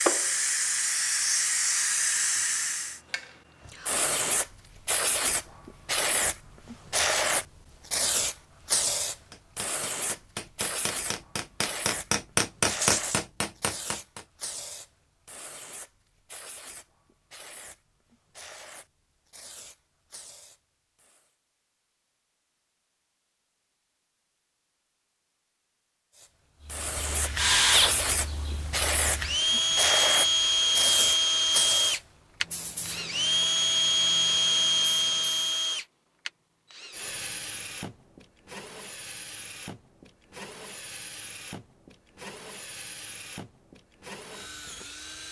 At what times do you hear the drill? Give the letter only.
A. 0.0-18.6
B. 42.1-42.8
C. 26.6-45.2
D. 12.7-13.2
C.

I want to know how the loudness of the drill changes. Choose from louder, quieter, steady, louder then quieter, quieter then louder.
quieter.